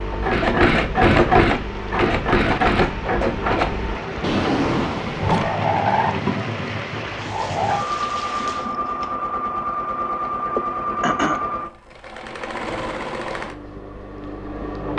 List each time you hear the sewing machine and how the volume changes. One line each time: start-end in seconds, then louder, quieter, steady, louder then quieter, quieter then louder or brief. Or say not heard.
0.0-14.9 quieter.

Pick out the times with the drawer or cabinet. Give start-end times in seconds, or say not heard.
4.2-5.5, 8.2-9.2.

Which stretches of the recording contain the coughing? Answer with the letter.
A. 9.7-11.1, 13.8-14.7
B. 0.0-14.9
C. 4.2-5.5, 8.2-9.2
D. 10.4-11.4
D.